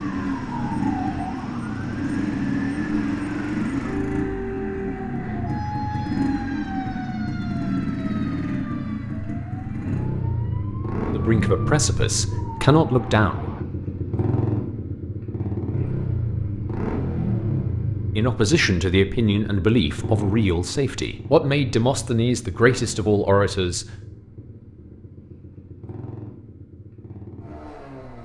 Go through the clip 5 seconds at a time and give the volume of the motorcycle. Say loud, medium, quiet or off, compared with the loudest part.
loud, loud, loud, loud, medium, quiet.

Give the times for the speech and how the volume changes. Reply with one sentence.
The speech can be heard briefly from 11.1 to 13.5 s; and from 18.1 to 23.9 s, at a steady volume.